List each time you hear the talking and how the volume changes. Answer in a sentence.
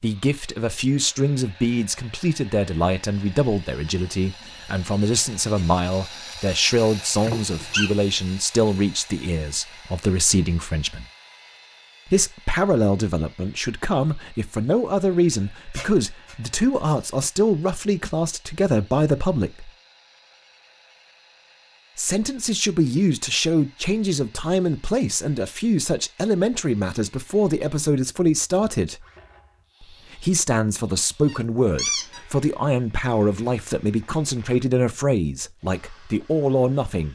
You can hear the talking from 0.0 to 11.1 s, at a steady volume; from 12.1 to 19.7 s, at a steady volume; from 21.9 to 29.1 s, at a steady volume; and from 29.8 to 37.1 s, at a steady volume.